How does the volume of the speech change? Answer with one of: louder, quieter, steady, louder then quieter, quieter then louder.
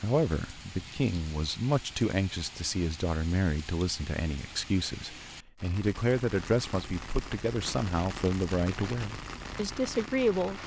steady.